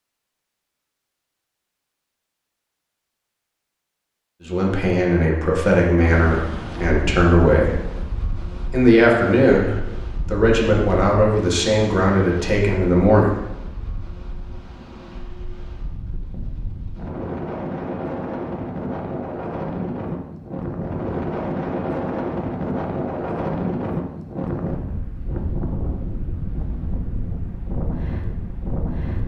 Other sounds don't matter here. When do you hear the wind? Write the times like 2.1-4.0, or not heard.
6.0-29.2.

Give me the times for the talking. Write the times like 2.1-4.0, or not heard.
4.4-7.8, 8.7-13.3.